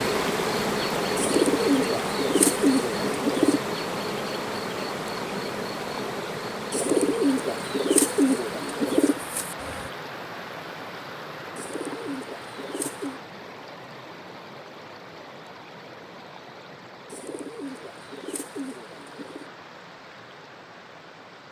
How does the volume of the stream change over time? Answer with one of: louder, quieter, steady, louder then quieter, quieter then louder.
quieter.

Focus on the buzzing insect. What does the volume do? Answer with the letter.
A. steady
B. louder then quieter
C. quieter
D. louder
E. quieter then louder
C.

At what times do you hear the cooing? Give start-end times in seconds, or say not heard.
1.1-3.6, 6.7-9.2, 11.6-13.2, 17.1-19.5.